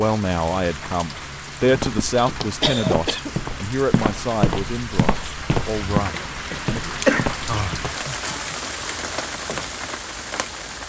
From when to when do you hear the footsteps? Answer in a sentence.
You can hear the footsteps from 1.7 to 8.4 s.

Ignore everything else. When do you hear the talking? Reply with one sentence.
The talking can be heard from 0.0 to 6.8 s.